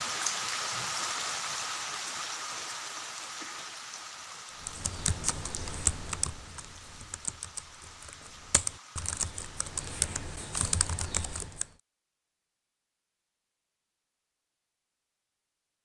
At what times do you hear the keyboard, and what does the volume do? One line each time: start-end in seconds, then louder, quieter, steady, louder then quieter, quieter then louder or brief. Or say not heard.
4.7-11.7 quieter then louder.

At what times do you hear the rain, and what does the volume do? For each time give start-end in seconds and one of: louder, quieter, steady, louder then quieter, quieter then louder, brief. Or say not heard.
0.0-10.2 quieter.